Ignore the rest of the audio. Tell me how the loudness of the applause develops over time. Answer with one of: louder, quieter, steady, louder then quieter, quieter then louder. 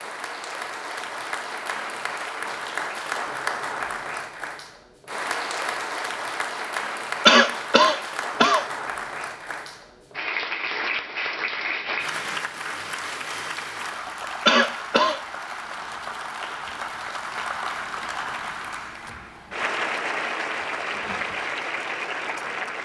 steady.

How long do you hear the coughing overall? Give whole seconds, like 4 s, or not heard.
2 s.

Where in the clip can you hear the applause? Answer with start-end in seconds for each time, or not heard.
0.0-22.8.